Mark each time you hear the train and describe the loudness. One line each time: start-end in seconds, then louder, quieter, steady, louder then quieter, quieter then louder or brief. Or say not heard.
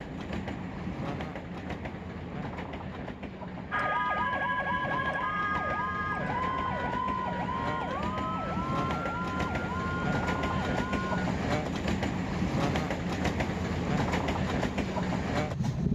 0.0-15.9 louder.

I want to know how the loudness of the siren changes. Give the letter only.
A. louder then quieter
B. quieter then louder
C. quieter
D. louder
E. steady
C.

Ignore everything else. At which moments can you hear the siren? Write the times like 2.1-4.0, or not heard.
3.7-11.3.